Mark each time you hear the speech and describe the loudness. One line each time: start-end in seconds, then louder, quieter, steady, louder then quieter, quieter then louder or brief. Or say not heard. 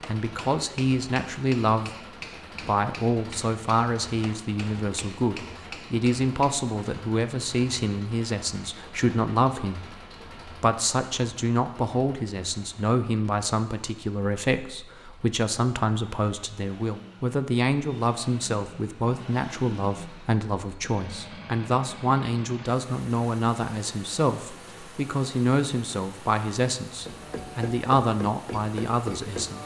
0.1-1.9 brief
2.6-29.6 steady.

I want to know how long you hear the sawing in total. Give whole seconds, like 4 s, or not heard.
not heard.